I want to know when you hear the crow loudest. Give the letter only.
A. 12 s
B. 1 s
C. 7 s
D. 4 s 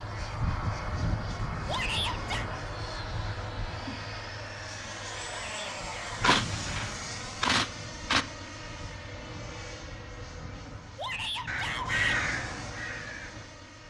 A.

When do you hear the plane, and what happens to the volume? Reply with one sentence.
You can hear the plane from 0.0 to 13.8 s, getting quieter.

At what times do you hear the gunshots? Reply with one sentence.
You can hear the gunshots from 6.2 to 8.2 s.